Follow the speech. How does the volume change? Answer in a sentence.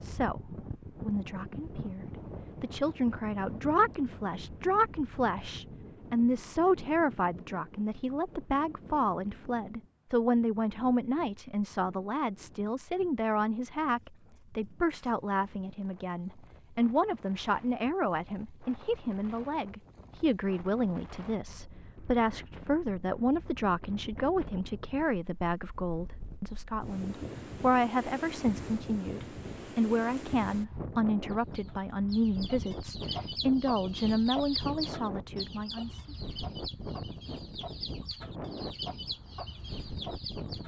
The loudness of the speech stays about the same.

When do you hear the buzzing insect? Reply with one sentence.
You can't hear the buzzing insect here.